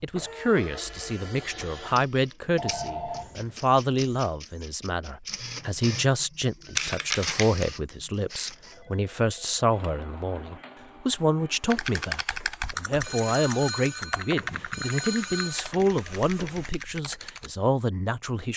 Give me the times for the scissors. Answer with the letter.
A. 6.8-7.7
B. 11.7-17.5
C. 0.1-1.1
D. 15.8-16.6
A.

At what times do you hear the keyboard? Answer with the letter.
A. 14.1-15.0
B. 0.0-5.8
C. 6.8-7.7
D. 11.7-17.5
D.